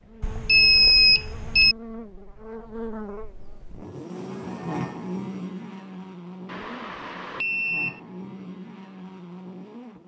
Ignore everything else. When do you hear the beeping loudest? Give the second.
1 s.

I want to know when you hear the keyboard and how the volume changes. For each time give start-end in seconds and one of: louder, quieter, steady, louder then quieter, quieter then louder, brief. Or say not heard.
not heard.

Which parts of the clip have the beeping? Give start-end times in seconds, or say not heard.
0.2-1.8, 6.5-8.0.